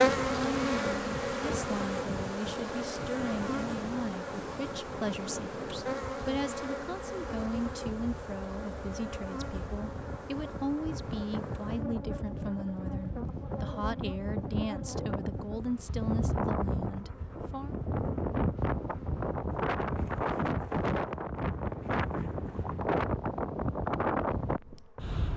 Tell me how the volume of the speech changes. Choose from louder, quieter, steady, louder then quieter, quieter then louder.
steady.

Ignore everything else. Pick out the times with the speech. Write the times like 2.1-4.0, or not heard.
0.1-17.8.